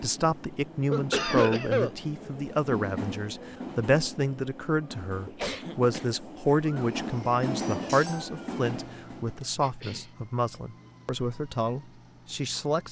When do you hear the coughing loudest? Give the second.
1 s.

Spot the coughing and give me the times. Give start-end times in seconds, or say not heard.
0.9-1.9, 5.2-6.6, 9.6-10.1.